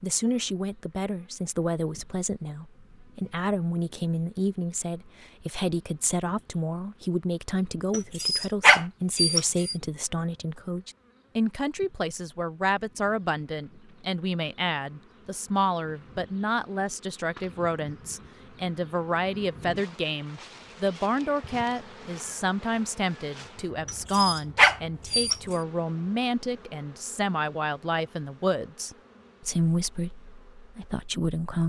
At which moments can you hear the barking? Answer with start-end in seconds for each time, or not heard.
7.9-9.8, 23.9-25.4.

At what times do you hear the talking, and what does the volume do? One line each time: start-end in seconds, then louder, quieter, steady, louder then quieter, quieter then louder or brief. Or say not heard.
0.0-31.6 steady.